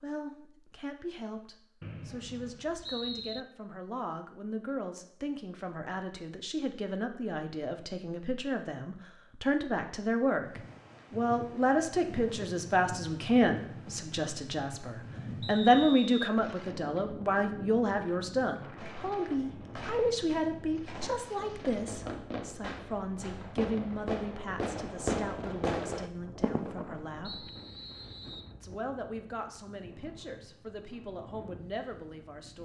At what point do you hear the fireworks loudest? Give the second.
25 s.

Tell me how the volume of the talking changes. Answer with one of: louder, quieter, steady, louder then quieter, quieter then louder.
louder then quieter.